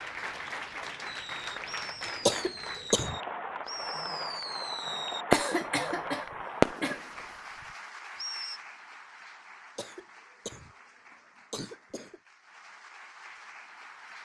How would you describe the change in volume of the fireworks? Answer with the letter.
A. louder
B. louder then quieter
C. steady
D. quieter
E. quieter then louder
B.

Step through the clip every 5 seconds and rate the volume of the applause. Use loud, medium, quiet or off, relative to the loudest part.
loud, loud, quiet.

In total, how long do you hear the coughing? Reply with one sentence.
The coughing can be heard for 4 seconds in total.